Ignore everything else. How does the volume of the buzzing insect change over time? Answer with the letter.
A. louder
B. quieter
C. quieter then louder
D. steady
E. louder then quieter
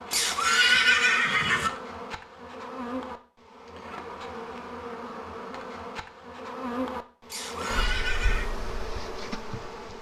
D.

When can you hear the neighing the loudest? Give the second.
1 s.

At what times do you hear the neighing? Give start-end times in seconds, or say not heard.
0.1-1.7, 7.3-8.5.